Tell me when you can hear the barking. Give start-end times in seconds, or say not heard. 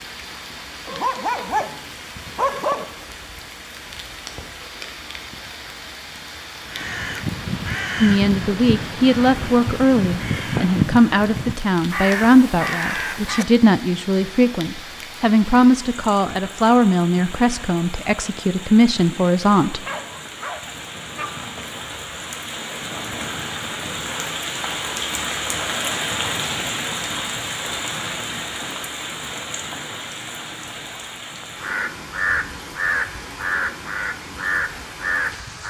0.8-2.9, 19.9-21.8.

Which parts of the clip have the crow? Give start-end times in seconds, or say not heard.
6.7-13.4, 31.6-35.6.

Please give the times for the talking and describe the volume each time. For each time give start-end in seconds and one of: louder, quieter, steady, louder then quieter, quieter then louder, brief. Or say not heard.
8.0-19.9 steady.